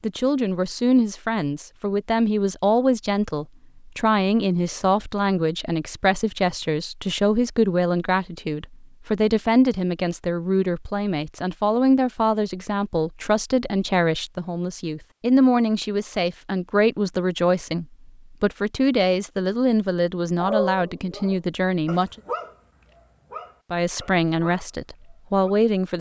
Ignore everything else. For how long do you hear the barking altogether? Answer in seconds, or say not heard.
5 s.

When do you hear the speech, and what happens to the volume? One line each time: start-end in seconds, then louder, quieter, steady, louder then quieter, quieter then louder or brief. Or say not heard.
0.0-22.1 steady
23.7-25.9 brief.